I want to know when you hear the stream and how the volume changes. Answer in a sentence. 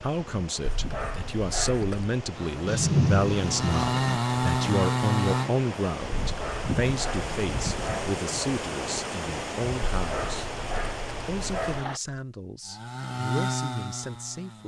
The stream can be heard from 0.0 to 12.0 s, getting louder.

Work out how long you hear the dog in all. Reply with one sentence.
The dog can be heard for 5 seconds in total.